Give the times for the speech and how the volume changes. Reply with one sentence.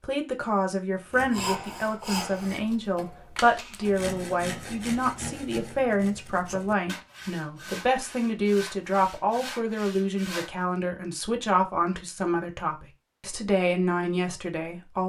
You can hear the speech from 0.0 to 15.0 s, at a steady volume.